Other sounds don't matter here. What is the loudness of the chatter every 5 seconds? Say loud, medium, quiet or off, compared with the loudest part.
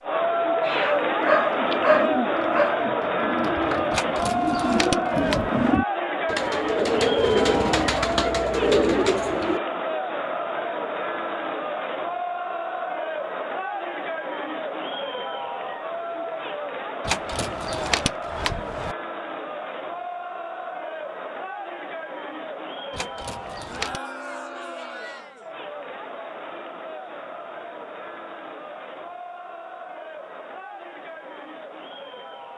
loud, loud, medium, medium, medium, quiet, quiet.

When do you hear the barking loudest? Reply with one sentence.
The volume of the barking peaks at 2 seconds.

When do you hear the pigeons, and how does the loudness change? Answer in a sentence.
The pigeons can be heard from 0.9 to 9.6 s, getting louder.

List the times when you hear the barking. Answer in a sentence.
The barking can be heard from 0.7 to 2.8 s.